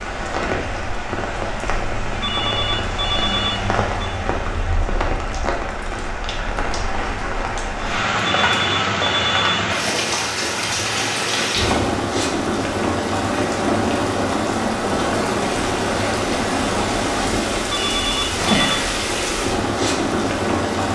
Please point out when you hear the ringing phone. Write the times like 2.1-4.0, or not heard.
2.2-4.2, 8.2-9.5, 17.7-18.8.